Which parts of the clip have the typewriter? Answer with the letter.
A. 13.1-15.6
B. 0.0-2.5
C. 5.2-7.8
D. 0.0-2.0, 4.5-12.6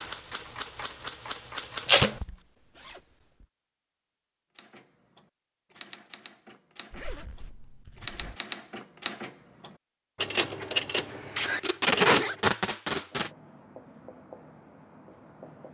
D.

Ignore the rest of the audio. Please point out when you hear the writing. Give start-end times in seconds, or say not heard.
13.1-15.6.